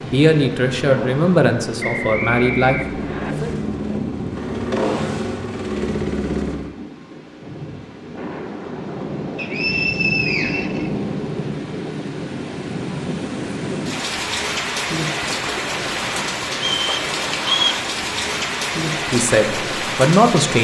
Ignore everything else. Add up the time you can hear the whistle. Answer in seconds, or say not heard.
4 s.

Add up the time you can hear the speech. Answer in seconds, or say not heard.
5 s.